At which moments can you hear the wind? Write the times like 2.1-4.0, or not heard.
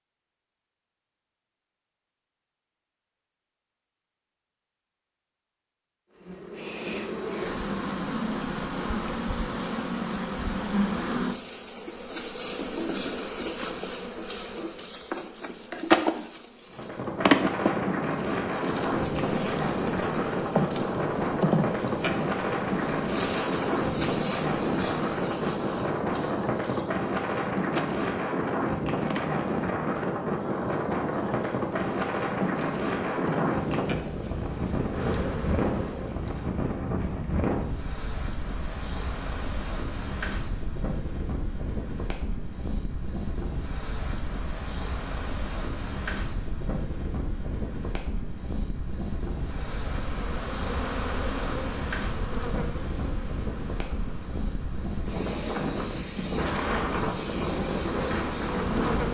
16.7-59.0.